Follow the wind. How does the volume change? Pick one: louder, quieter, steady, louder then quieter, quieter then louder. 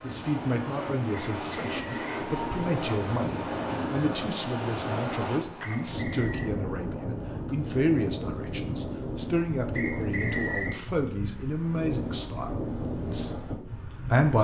steady.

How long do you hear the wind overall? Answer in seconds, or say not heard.
14 s.